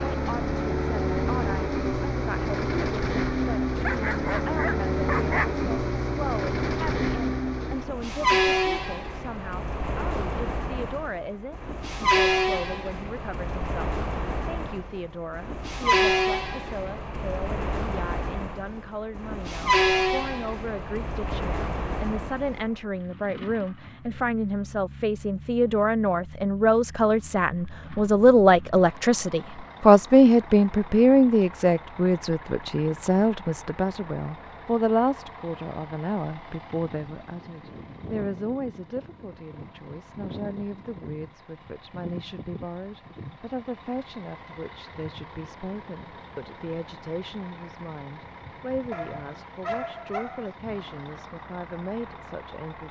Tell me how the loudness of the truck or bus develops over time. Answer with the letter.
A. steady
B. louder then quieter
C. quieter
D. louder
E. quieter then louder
C.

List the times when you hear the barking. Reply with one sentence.
You can hear the barking from 3.8 to 5.7 s and from 48.9 to 50.5 s.